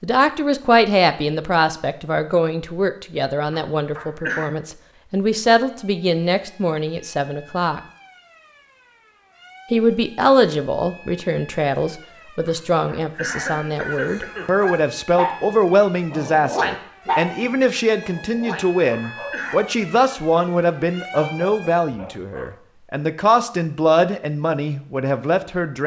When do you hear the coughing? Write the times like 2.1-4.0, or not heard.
3.5-4.5, 12.4-14.7, 18.6-19.6.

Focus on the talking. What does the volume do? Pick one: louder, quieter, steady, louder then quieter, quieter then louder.
steady.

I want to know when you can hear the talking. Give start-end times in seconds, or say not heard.
0.0-7.8, 9.7-25.8.